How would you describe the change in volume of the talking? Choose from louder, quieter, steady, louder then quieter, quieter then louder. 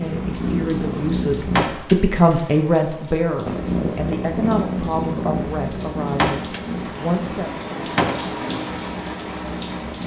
louder then quieter.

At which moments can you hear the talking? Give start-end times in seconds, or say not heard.
0.0-7.7.